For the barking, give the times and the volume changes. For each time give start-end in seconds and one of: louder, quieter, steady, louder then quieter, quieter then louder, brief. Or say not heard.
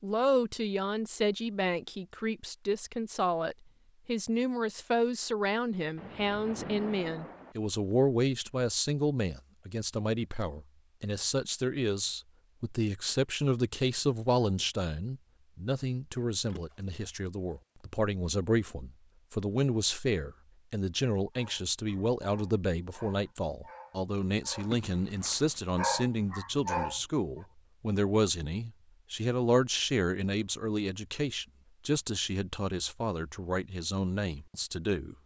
21.3-27.4 louder.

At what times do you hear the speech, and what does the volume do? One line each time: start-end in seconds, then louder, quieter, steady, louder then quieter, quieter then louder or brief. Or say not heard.
0.0-35.1 steady.